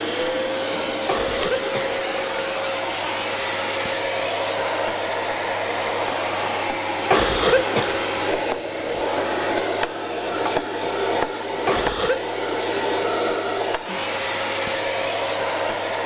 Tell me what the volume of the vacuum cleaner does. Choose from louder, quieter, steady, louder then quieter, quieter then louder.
steady.